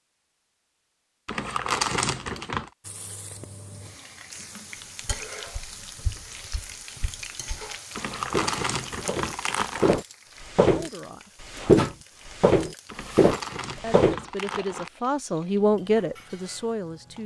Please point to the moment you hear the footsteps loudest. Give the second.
12 s.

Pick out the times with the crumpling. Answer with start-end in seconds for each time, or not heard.
1.2-2.7, 8.0-9.9, 12.8-14.9.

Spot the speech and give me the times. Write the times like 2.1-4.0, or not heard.
10.7-11.3, 13.8-17.2.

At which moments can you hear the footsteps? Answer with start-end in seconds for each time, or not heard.
5.0-10.9, 11.6-14.2.